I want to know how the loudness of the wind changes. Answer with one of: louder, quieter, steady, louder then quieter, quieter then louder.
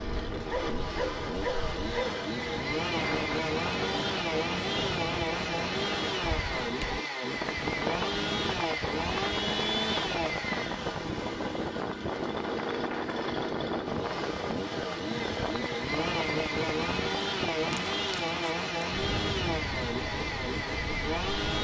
steady.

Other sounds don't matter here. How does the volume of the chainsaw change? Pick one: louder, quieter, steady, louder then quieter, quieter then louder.
steady.